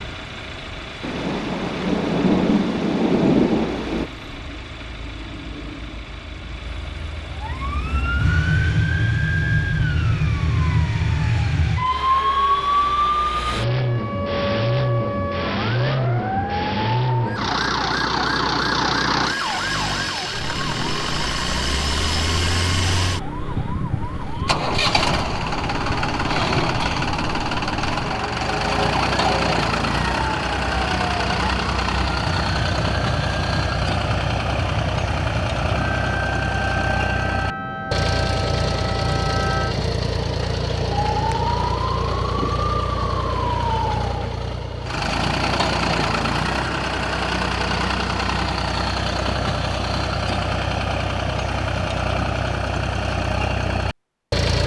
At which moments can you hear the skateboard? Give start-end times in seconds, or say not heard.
not heard.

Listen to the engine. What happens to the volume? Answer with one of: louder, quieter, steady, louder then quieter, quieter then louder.
louder.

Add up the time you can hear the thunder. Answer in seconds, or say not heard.
3 s.